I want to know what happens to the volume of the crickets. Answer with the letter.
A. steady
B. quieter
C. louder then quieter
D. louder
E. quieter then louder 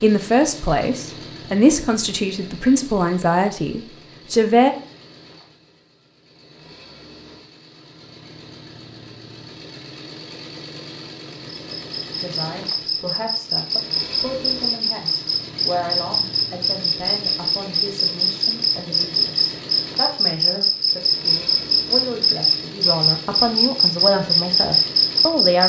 D.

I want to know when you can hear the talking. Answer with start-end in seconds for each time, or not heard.
0.0-4.7, 12.2-25.6.